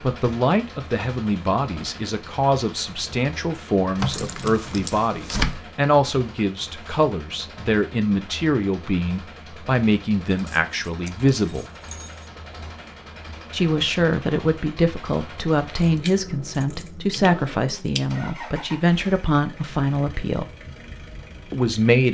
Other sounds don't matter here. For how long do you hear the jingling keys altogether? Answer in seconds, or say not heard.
6 s.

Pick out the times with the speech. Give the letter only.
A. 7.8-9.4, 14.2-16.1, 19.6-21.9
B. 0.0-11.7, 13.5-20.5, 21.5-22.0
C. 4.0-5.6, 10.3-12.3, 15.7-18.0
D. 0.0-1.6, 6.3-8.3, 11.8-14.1
B.